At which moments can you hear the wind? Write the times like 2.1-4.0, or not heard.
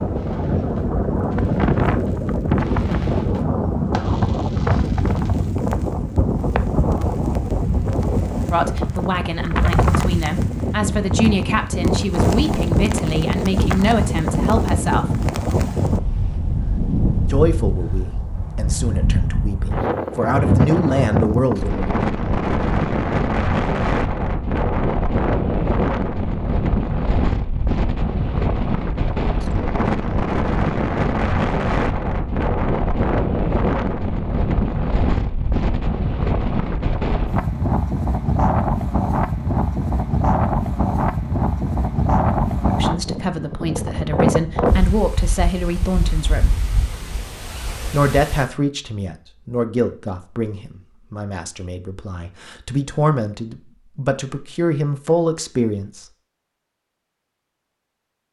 0.0-48.5.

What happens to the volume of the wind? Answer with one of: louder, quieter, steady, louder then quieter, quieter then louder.
steady.